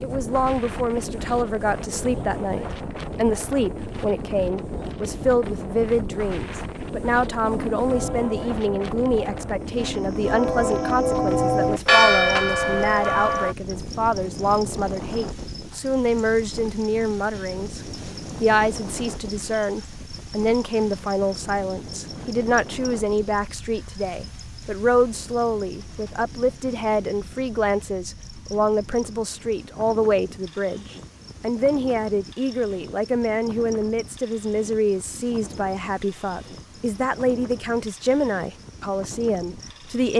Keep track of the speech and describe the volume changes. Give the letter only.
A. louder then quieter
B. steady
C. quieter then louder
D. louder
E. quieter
B.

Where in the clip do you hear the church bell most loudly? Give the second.
12 s.